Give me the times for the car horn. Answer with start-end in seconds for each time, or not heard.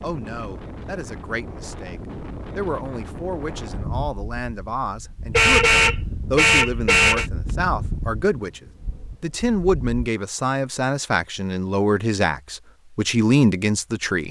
5.3-7.3.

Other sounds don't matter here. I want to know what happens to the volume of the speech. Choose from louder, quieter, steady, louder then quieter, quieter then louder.
louder.